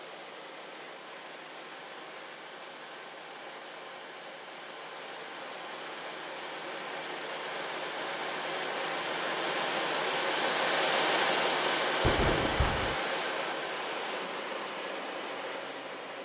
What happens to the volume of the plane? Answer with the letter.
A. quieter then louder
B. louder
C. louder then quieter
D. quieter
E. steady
C.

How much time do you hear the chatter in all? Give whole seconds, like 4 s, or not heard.
not heard.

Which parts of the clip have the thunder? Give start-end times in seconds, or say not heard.
12.0-13.0.